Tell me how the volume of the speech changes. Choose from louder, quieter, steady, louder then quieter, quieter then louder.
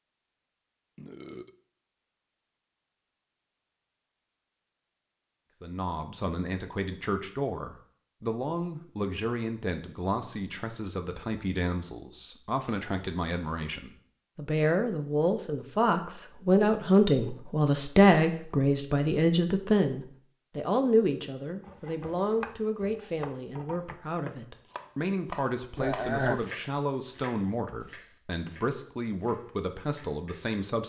louder then quieter.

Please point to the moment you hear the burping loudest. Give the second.
26 s.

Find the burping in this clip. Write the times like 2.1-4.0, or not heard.
0.9-1.6, 25.8-26.4.